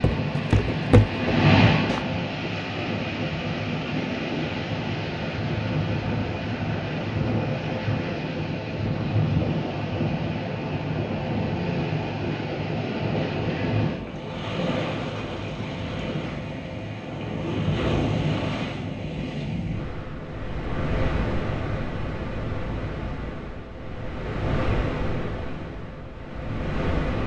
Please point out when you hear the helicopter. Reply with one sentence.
The helicopter can't be heard in this clip.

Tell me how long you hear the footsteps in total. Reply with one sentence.
You can hear the footsteps for 2 seconds altogether.